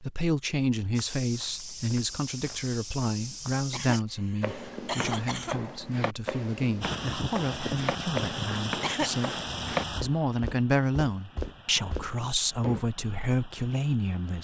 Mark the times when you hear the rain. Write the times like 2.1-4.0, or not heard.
6.8-14.3.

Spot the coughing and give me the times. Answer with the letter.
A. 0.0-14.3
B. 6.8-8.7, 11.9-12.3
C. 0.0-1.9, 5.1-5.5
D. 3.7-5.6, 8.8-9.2
D.